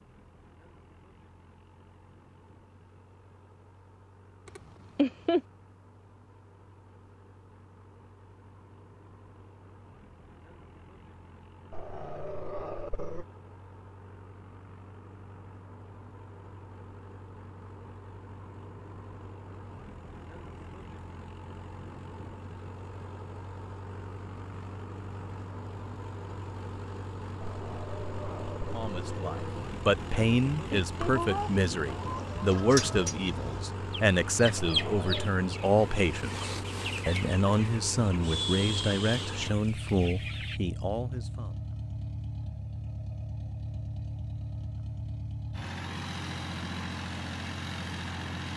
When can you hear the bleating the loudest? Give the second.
5 s.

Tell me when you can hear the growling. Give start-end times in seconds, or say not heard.
11.7-13.2, 27.4-29.7, 34.5-35.3.